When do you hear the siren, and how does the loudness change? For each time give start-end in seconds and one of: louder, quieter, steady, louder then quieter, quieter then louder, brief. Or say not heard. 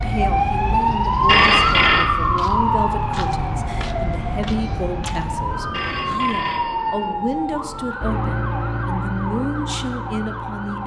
0.0-10.8 quieter.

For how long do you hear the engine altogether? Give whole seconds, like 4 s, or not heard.
3 s.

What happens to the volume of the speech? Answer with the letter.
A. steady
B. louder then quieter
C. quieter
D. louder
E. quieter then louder
A.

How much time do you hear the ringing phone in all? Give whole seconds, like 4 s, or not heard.
2 s.